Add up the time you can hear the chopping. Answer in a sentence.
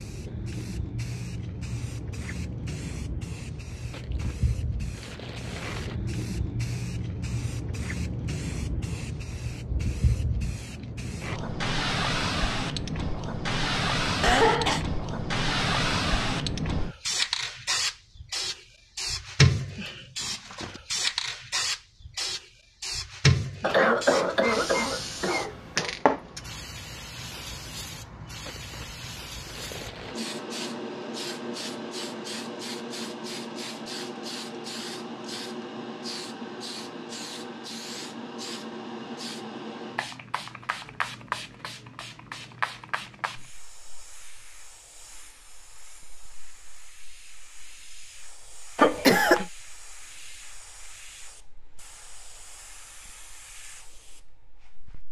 You can't hear the chopping here.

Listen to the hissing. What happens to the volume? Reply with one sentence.
The loudness of the hissing goes up, then down.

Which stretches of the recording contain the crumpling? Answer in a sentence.
You can hear the crumpling from 3.9 to 6.0 s and from 28.4 to 30.2 s.